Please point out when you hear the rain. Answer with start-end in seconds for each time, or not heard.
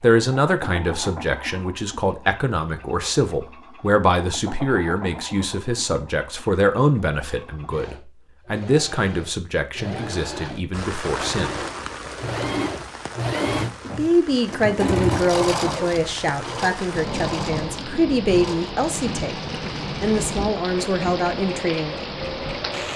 10.7-22.9.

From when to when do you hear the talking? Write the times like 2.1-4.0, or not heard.
0.0-11.6, 13.9-22.1.